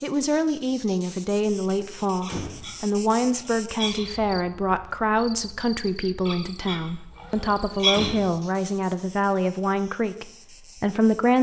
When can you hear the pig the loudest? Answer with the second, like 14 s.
8 s.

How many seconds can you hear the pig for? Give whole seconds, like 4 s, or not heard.
4 s.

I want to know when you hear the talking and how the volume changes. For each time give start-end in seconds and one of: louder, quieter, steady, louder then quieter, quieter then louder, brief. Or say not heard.
0.0-11.3 steady.